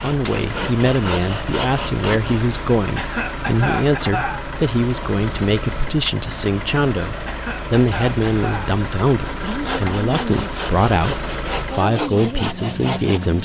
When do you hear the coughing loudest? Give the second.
4 s.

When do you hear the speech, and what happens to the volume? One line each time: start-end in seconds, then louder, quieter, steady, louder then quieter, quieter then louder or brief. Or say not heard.
0.0-13.4 steady.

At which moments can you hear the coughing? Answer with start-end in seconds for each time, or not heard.
3.0-4.5, 7.2-8.8.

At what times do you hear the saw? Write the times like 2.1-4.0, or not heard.
0.0-2.5, 9.2-13.2.